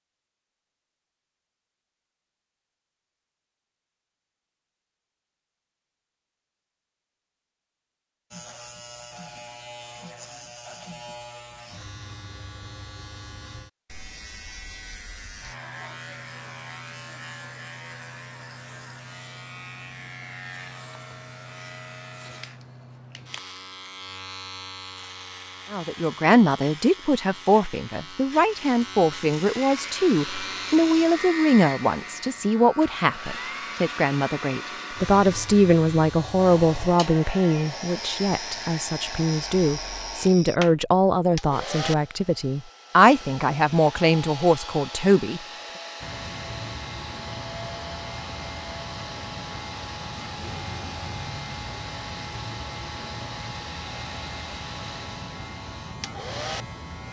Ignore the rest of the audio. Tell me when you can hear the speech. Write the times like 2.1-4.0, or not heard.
25.7-45.4.